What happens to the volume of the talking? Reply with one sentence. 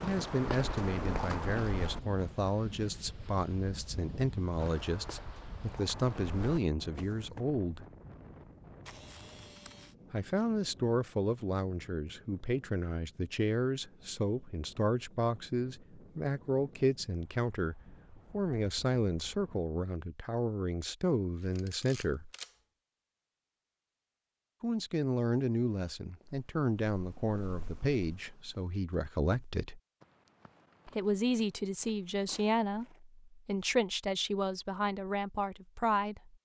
The loudness of the talking stays about the same.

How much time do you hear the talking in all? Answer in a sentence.
The talking can be heard for 31 seconds in total.